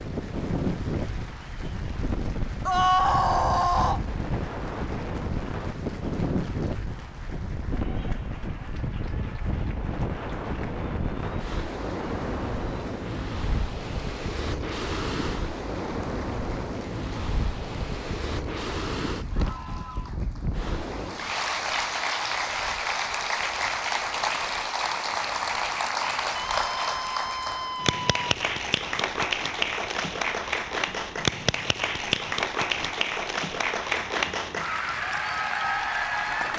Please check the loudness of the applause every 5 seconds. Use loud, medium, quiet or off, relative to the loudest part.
quiet, quiet, quiet, quiet, loud, loud, loud, loud.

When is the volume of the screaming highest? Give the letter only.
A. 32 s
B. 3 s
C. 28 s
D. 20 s
B.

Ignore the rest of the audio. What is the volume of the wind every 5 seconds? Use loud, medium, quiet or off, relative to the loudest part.
loud, loud, loud, loud, medium, quiet, quiet, quiet.